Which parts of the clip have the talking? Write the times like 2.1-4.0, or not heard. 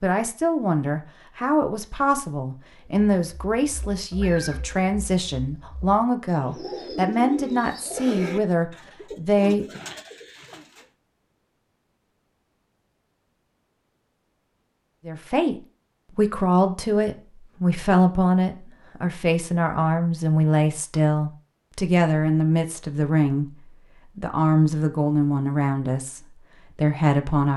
0.0-9.7, 15.1-23.5, 24.1-27.5.